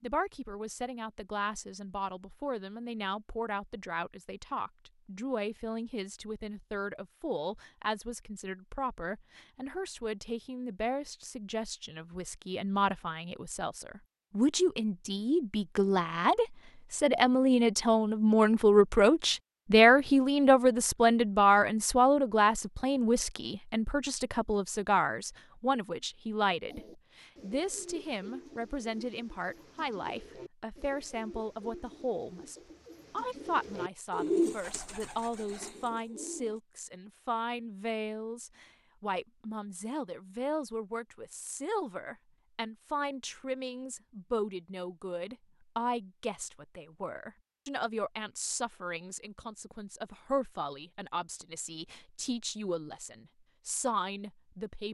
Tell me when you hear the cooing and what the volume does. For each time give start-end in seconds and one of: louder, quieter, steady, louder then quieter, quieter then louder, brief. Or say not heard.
26.6-36.6 louder.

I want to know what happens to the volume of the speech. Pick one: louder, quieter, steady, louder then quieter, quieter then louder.
louder then quieter.